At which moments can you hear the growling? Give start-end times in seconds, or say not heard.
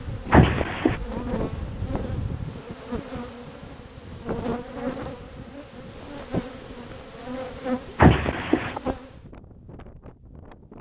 0.3-1.0, 8.0-8.8.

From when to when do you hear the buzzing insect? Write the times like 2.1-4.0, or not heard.
0.0-9.2.